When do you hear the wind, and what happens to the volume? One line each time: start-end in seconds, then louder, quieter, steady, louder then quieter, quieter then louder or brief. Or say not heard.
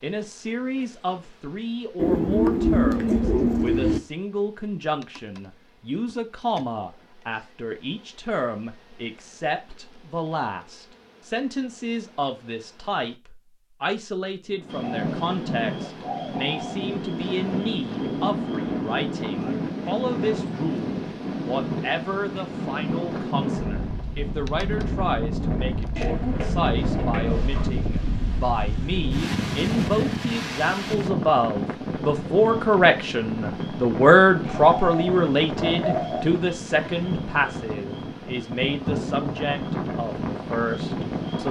14.5-41.4 steady.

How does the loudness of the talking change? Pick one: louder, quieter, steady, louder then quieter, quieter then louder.
louder.